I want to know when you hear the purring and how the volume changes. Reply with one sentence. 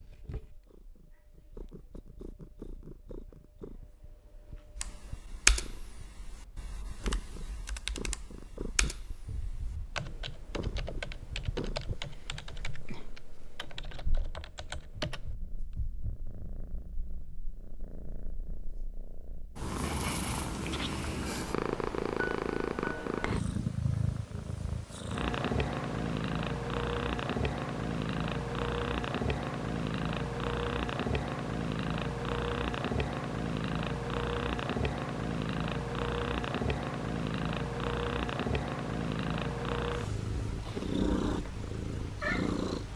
The purring can be heard from 0.0 to 42.9 s, getting louder.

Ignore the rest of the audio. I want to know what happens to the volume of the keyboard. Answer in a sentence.
The loudness of the keyboard goes down.